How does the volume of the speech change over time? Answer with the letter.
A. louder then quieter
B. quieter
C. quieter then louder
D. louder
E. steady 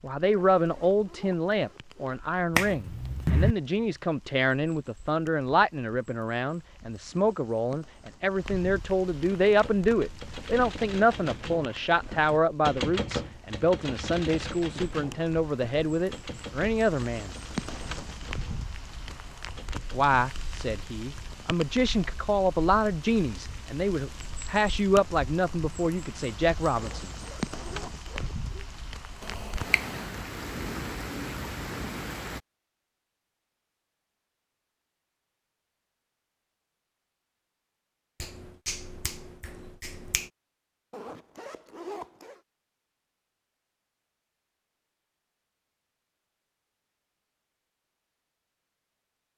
E.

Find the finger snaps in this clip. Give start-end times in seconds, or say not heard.
2.5-3.5, 29.2-30.1, 38.2-40.3.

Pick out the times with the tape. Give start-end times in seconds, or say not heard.
not heard.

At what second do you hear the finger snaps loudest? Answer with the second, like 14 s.
3 s.